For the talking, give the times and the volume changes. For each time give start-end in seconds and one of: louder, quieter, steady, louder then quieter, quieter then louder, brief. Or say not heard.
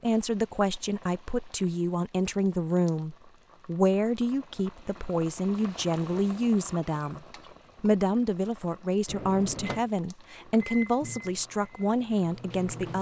0.0-12.9 steady.